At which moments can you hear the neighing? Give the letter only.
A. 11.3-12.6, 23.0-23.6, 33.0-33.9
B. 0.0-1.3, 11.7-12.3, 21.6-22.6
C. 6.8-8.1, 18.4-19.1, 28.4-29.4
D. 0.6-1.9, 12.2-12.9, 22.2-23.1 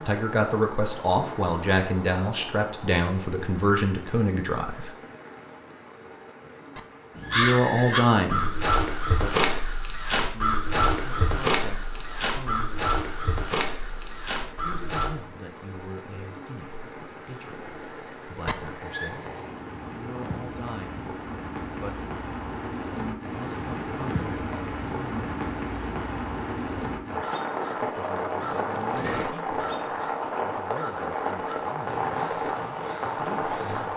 C.